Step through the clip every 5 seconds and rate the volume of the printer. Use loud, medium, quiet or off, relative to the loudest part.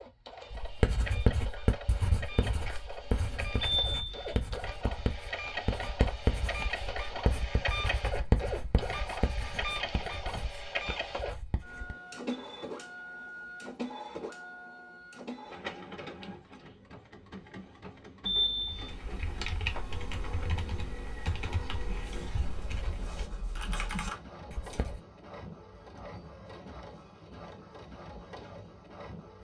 medium, loud, loud, medium, medium, medium.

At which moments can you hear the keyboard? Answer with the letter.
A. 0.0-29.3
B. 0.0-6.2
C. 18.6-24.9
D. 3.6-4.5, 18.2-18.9
C.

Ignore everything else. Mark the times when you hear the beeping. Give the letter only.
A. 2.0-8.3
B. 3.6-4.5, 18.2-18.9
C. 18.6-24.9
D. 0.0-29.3
B.